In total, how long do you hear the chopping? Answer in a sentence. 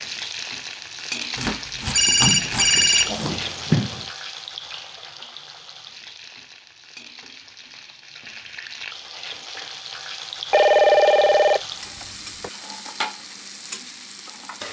The chopping can be heard for 2 seconds in total.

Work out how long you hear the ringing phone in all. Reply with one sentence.
The ringing phone can be heard for 4 seconds in total.